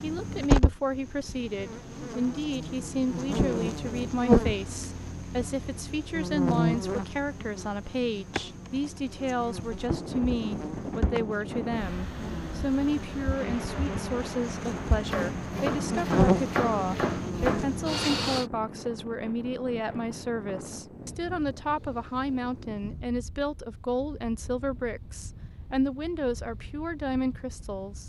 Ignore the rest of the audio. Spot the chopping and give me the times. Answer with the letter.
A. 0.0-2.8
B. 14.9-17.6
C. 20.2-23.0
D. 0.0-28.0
B.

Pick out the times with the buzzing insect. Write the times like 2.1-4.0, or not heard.
0.0-18.4.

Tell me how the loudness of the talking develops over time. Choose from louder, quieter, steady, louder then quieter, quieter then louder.
steady.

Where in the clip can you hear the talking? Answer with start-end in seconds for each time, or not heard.
0.0-28.0.